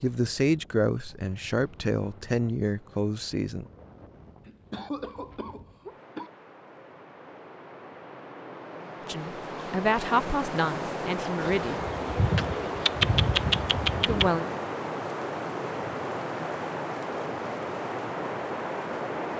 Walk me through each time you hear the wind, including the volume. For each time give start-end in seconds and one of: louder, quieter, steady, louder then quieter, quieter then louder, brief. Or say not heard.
0.1-19.3 louder.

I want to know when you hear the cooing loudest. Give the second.
13 s.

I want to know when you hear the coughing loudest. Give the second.
5 s.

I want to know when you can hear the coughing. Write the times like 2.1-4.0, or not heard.
4.5-6.3.